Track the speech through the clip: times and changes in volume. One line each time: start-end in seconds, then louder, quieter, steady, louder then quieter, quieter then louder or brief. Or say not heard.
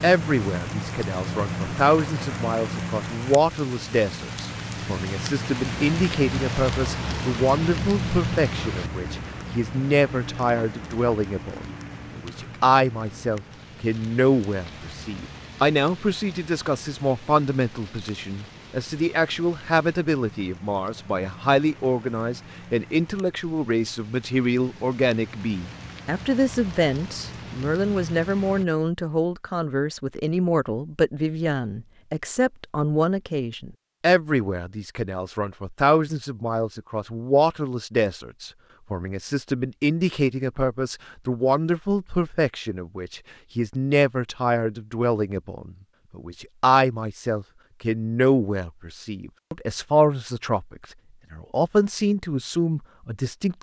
0.0-53.5 steady.